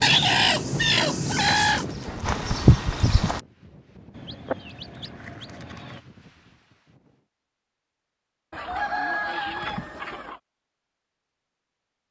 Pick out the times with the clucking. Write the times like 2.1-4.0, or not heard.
0.0-1.9, 4.2-6.0, 8.5-10.4.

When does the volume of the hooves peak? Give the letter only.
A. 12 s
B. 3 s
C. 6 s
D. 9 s
B.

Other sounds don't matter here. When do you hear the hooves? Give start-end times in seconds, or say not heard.
0.0-3.4.